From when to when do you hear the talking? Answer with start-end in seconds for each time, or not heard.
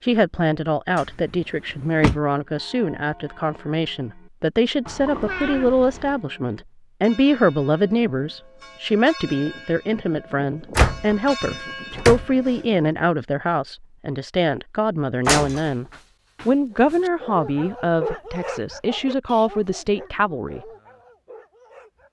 0.0-15.8, 16.4-20.6.